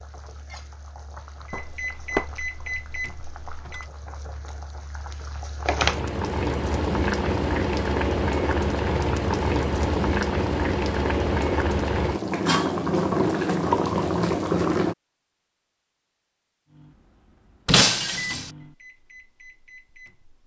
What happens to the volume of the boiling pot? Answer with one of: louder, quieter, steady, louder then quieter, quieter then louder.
louder.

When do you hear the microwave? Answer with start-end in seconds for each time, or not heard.
1.5-3.9, 16.7-20.4.